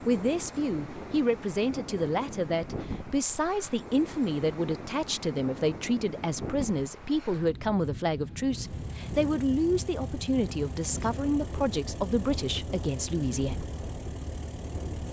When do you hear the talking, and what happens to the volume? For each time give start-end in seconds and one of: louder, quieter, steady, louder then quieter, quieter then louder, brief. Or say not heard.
0.1-13.6 steady.